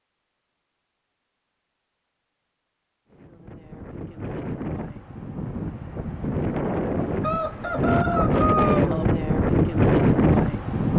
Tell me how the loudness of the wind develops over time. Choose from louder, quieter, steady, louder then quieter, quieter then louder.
louder.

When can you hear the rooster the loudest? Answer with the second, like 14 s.
9 s.